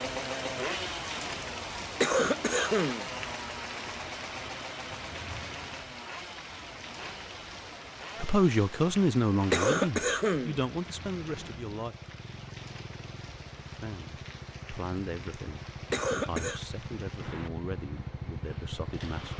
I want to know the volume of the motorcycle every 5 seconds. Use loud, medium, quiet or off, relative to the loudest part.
loud, medium, medium, loud.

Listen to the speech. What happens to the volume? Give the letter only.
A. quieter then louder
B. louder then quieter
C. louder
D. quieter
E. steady
D.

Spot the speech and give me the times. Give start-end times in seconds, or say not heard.
8.2-11.9, 13.7-19.3.